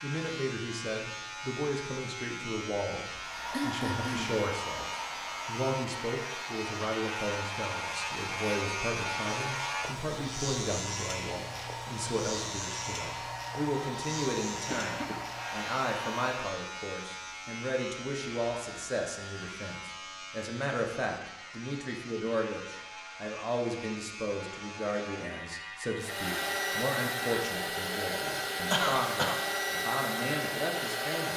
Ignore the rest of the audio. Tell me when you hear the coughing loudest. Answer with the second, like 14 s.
29 s.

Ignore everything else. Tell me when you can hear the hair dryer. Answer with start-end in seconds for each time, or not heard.
3.1-16.5, 26.0-31.3.